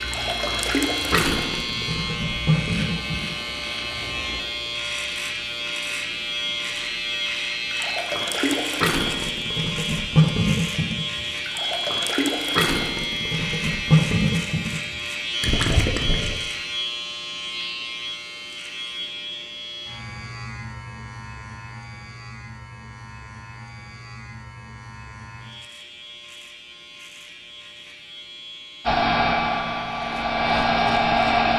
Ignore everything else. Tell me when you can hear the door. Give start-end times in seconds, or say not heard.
not heard.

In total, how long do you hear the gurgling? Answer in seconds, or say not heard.
12 s.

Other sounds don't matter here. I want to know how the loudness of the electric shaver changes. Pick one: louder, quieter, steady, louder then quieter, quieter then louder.
quieter.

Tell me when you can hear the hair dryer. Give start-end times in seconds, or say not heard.
28.9-31.5.